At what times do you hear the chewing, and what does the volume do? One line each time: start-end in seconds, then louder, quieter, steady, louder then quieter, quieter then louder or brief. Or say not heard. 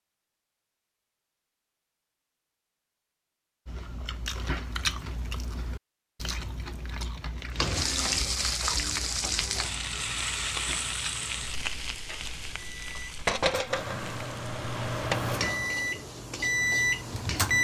3.6-13.2 quieter.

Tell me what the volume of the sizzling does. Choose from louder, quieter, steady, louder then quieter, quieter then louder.
quieter.